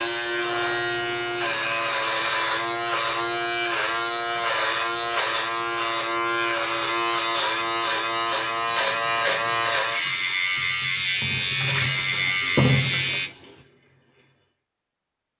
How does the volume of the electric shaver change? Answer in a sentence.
The volume of the electric shaver stays about the same.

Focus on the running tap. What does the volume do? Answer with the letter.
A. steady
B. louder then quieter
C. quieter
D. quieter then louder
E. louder
E.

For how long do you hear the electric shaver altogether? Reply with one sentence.
You can hear the electric shaver for 13 seconds altogether.